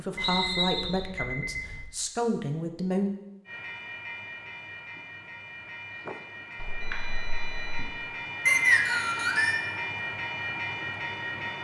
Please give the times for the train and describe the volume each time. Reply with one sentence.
You can hear the train from 3.5 to 11.6 s, getting louder.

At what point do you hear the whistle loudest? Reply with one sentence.
The loudest moment of the whistle is at 9 seconds.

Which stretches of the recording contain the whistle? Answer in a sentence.
You can hear the whistle from 0.2 to 1.1 s and from 8.4 to 9.6 s.